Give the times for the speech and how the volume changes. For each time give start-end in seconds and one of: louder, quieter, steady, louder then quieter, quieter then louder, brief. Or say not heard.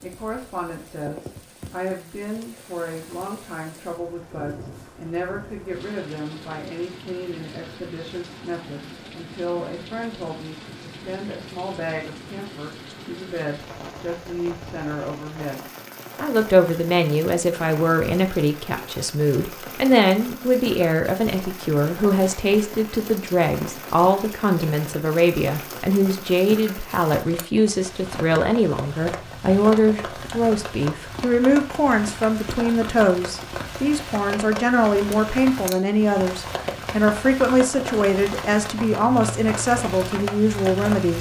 0.0-41.1 louder.